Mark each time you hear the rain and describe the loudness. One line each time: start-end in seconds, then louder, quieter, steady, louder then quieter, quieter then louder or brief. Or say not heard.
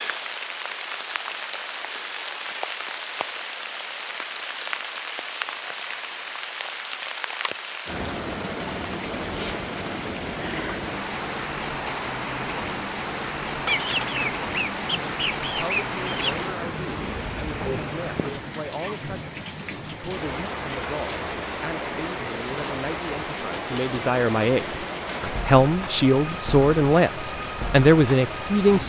0.0-28.8 steady.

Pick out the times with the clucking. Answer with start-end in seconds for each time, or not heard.
13.7-16.5.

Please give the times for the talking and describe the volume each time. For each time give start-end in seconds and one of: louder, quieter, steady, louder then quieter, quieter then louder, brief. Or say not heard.
15.4-28.8 louder.